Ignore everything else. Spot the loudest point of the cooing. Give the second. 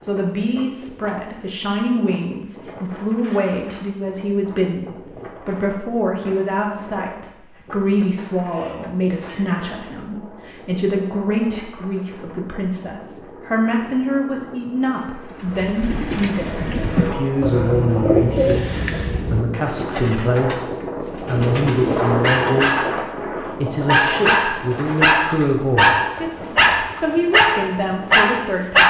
18 s.